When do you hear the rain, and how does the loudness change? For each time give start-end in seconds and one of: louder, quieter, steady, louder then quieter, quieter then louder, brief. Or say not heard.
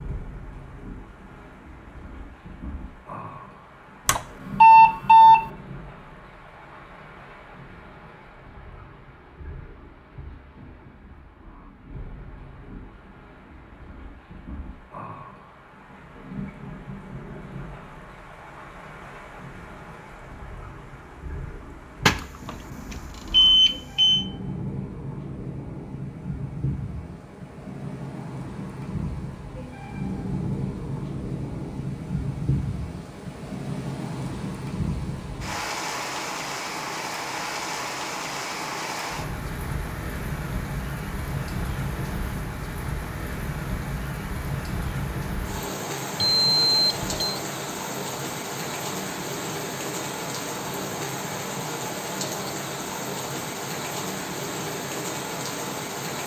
0.0-56.2 louder.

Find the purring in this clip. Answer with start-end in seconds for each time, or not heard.
not heard.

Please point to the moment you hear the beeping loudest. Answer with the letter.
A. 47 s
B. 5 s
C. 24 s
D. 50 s
B.